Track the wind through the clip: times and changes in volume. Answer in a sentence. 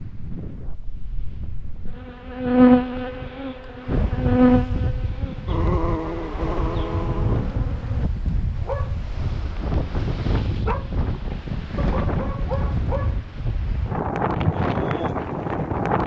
The wind can be heard from 0.0 to 16.0 s, getting louder.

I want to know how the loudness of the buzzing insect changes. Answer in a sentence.
The volume of the buzzing insect goes up, then down.